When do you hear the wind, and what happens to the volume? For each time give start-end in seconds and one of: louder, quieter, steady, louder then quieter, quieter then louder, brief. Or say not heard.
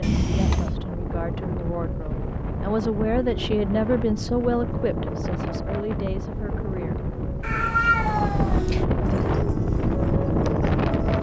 0.0-11.1 louder.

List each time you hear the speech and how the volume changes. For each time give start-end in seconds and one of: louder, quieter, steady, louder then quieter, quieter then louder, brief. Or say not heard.
0.2-7.0 louder then quieter.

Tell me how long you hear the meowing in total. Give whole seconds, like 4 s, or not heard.
2 s.